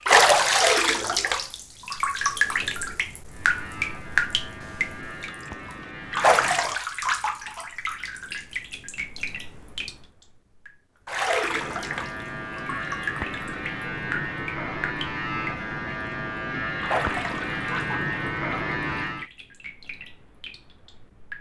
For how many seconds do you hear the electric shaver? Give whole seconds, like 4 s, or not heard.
11 s.